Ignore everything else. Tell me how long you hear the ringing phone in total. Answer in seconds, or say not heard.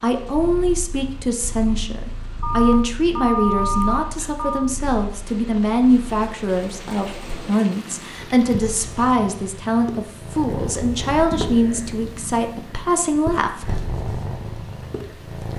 2 s.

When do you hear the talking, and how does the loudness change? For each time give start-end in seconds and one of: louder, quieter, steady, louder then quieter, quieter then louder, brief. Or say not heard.
0.0-13.8 steady.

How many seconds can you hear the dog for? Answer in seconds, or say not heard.
not heard.